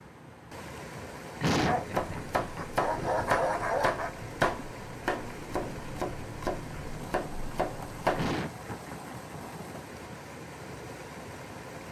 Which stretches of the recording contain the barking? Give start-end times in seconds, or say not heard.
1.6-4.2.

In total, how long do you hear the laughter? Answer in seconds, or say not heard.
3 s.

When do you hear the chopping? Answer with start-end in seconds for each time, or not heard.
1.9-8.3.